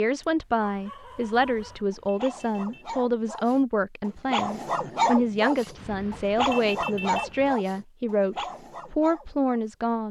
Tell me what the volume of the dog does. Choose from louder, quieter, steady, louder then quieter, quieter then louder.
louder then quieter.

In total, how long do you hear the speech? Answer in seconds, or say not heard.
10 s.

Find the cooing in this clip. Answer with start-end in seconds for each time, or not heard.
not heard.